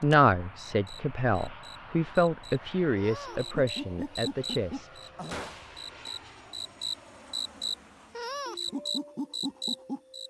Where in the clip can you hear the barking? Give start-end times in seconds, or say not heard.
not heard.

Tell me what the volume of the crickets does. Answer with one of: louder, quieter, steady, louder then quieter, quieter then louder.
louder.